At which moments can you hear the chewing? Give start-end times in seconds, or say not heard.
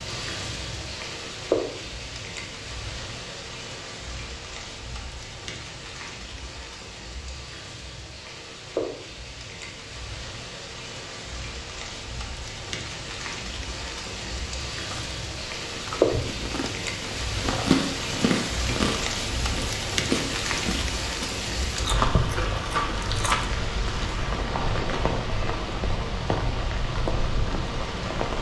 14.9-23.4.